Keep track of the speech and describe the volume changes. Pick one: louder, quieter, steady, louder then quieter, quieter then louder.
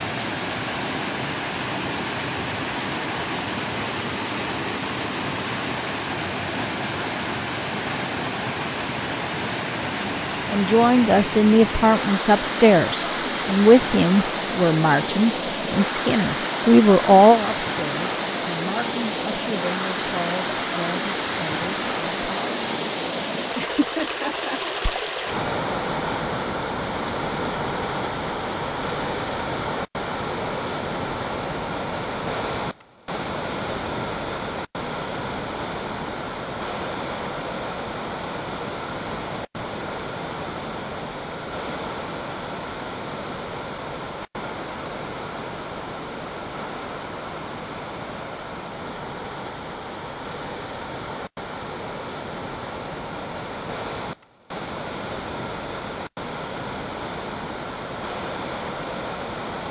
quieter.